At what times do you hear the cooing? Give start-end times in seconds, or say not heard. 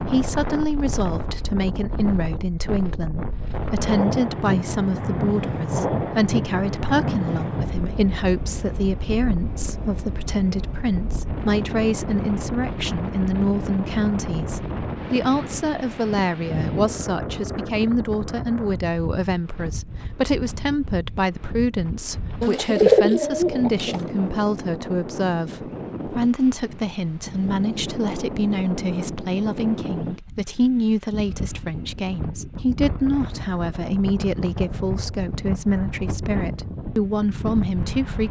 22.4-24.1.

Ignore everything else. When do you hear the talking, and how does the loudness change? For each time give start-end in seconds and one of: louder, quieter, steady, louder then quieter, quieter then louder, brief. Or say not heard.
0.1-38.2 steady.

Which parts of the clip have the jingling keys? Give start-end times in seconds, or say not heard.
not heard.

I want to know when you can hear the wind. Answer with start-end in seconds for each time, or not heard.
0.0-38.2.